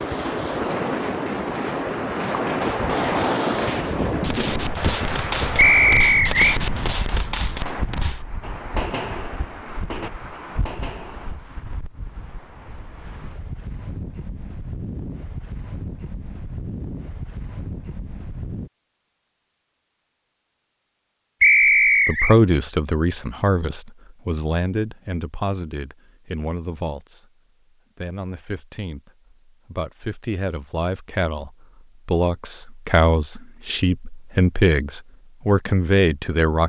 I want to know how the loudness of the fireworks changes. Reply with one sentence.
The volume of the fireworks goes up, then down.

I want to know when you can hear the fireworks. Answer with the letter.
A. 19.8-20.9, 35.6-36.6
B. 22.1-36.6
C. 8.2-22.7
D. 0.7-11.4
D.